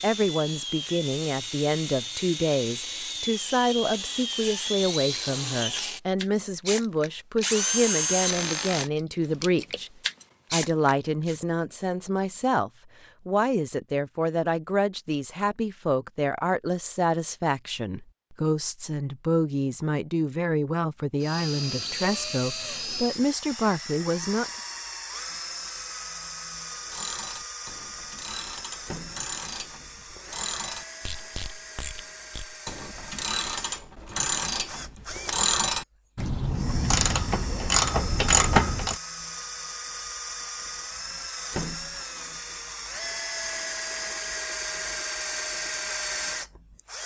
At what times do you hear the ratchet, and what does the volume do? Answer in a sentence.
The ratchet can be heard from 26.9 to 39.0 s, getting louder.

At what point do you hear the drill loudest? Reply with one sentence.
The volume of the drill peaks at 8 seconds.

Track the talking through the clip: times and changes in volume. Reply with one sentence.
You can hear the talking from 0.0 to 9.9 s, at a steady volume; and from 10.5 to 24.5 s, at a steady volume.